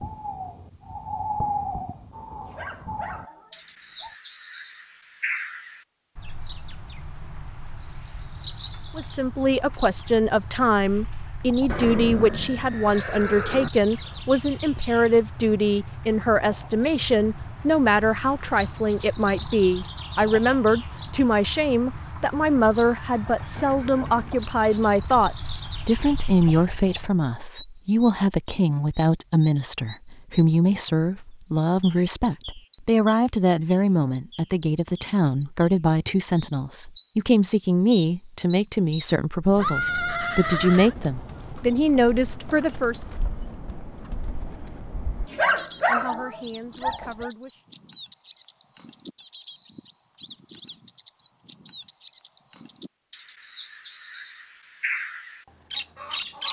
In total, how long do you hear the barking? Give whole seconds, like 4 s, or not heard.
4 s.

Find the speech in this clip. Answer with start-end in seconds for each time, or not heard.
8.9-43.0, 45.4-47.5.